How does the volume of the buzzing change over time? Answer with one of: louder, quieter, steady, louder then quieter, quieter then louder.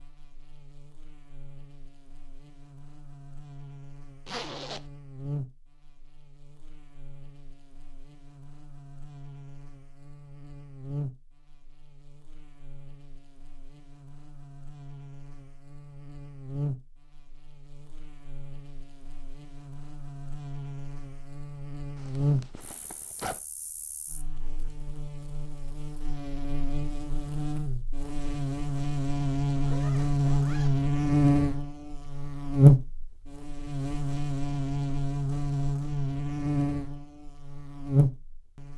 louder.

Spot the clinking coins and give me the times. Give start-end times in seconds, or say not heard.
not heard.